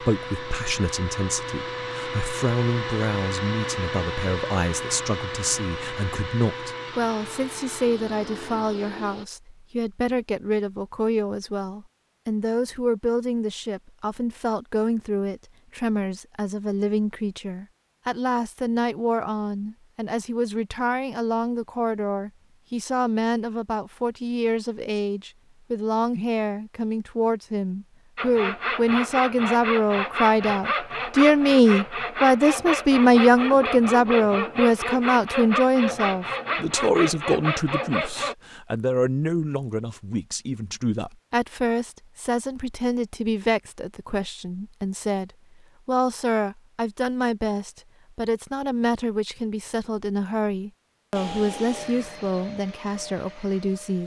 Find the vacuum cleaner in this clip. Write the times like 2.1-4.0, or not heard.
0.0-9.2, 51.1-54.0.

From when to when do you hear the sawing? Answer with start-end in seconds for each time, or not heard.
28.1-38.4.